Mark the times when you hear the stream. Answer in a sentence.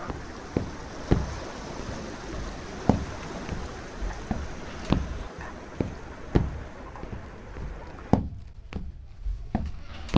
The stream can be heard from 0.0 to 8.2 s.